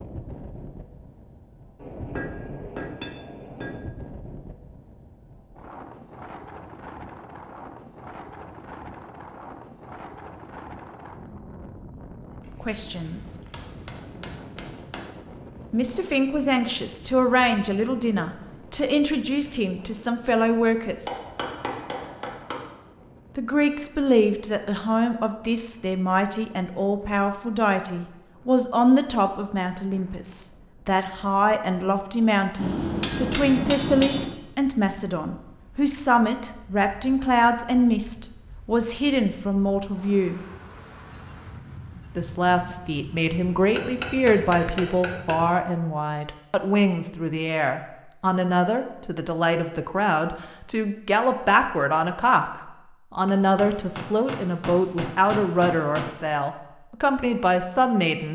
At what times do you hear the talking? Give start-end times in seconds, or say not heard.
12.6-13.3, 15.7-21.1, 23.4-40.4, 42.1-58.3.